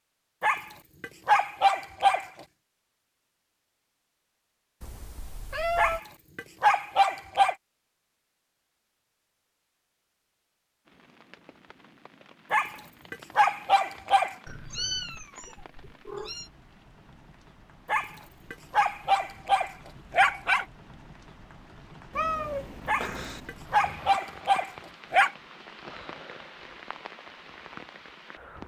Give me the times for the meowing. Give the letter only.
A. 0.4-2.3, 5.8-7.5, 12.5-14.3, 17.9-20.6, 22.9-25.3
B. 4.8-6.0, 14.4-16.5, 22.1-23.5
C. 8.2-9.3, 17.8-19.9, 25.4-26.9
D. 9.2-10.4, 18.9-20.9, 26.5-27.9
B.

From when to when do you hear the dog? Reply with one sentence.
The dog can be heard from 0.4 to 2.3 s, from 5.8 to 7.5 s, from 12.5 to 14.3 s, from 17.9 to 20.6 s and from 22.9 to 25.3 s.